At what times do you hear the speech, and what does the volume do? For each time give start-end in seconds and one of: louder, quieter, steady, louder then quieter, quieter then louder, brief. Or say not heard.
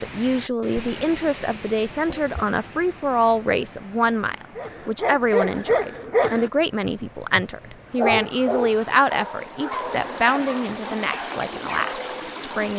0.0-12.7 steady.